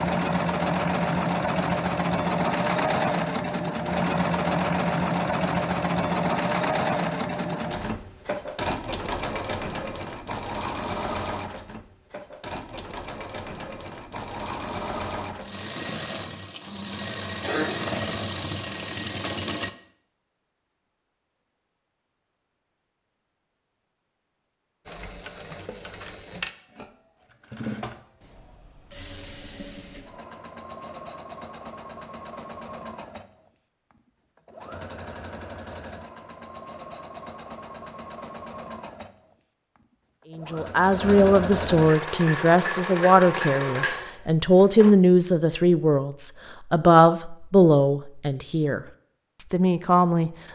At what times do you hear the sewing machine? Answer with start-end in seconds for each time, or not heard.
0.0-19.7, 24.9-45.0.